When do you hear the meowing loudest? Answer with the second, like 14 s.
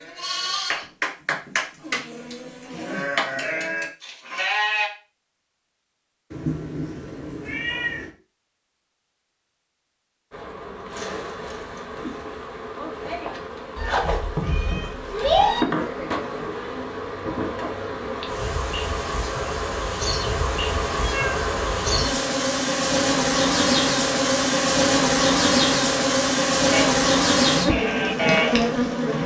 15 s.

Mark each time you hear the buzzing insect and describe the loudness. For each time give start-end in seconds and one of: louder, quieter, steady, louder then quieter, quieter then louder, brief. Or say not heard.
10.3-29.2 louder.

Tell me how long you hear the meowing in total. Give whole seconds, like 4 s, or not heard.
4 s.